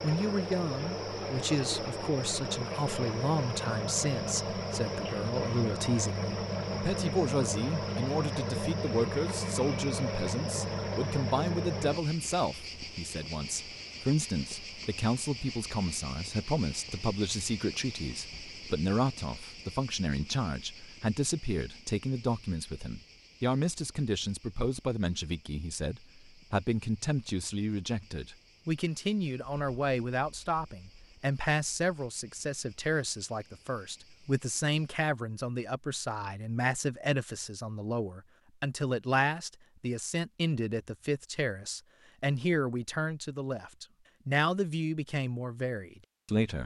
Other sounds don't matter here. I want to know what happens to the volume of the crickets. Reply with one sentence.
The loudness of the crickets goes down.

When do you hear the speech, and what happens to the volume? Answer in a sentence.
You can hear the speech from 0.0 to 46.6 s, at a steady volume.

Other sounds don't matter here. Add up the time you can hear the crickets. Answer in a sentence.
You can hear the crickets for 35 seconds altogether.